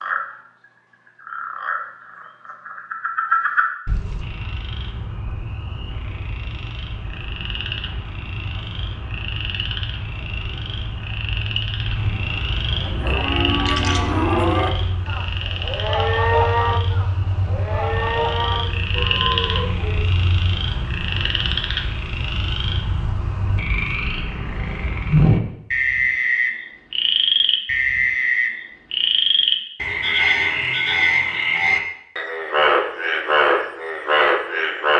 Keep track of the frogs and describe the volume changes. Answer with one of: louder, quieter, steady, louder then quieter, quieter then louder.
louder.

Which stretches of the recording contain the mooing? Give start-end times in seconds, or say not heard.
12.8-20.0.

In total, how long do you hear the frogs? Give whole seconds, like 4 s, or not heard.
35 s.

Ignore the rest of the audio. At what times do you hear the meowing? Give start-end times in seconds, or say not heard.
not heard.